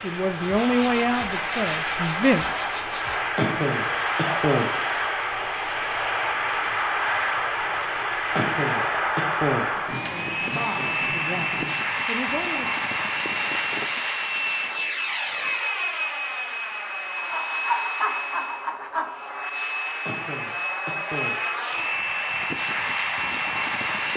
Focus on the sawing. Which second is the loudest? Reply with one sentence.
The volume of the sawing peaks at 18 seconds.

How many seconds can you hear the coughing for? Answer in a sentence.
The coughing can be heard for 4 seconds in total.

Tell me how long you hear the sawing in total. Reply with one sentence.
You can hear the sawing for 7 seconds altogether.